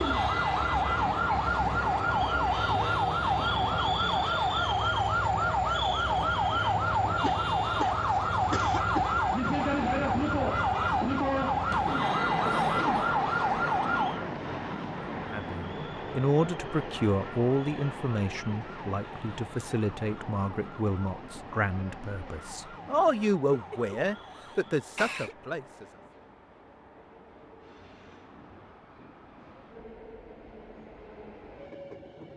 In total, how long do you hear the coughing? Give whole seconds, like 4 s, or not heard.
5 s.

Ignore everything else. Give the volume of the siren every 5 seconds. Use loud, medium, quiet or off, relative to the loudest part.
loud, loud, loud, quiet, quiet, off, off.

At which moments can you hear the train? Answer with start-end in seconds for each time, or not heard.
0.0-32.3.